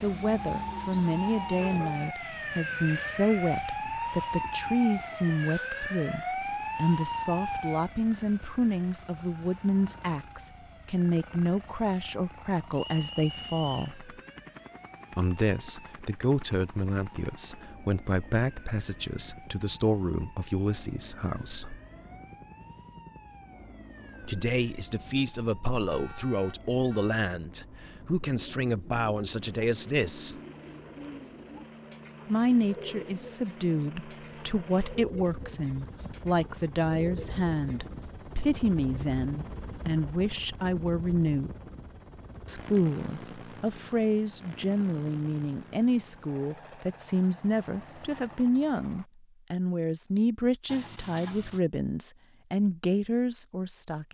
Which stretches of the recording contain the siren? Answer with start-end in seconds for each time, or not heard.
0.0-26.9.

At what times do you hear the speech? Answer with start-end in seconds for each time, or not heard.
0.0-14.1, 15.1-21.8, 24.2-30.4, 32.2-41.5, 42.5-54.0.